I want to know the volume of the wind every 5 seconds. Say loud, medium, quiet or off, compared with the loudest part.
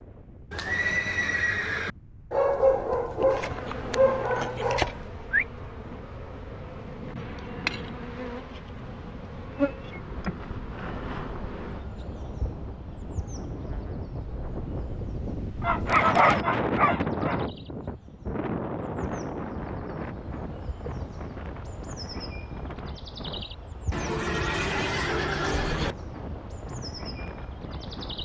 quiet, quiet, medium, loud, medium, medium.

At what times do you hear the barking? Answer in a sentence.
You can hear the barking from 2.3 to 5.0 s and from 15.6 to 17.4 s.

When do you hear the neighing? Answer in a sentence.
You can hear the neighing from 0.5 to 1.9 s and from 23.9 to 25.9 s.